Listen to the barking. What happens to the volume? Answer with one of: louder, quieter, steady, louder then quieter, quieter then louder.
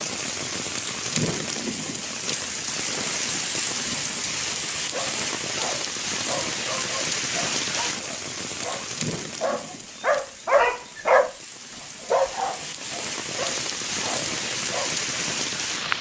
louder then quieter.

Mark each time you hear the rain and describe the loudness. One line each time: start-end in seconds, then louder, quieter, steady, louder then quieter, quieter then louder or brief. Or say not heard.
0.0-15.9 quieter then louder.